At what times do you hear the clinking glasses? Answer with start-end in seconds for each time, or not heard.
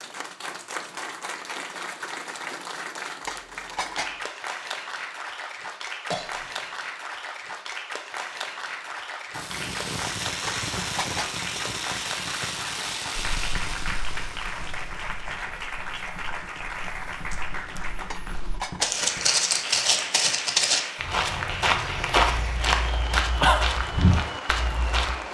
3.2-4.2, 10.4-11.4, 18.1-19.1.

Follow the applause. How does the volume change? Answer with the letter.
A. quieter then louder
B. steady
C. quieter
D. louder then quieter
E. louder
B.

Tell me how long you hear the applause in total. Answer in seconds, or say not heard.
25 s.